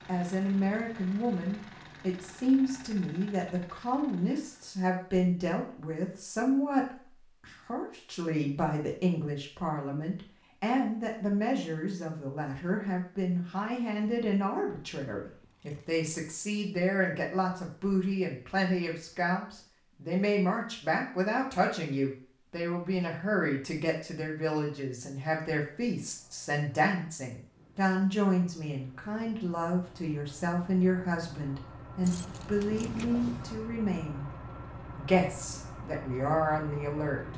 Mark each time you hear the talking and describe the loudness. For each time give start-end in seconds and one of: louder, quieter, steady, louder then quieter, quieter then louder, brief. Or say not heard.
0.1-34.2 steady
35.0-37.3 brief.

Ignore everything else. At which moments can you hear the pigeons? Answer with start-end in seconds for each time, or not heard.
not heard.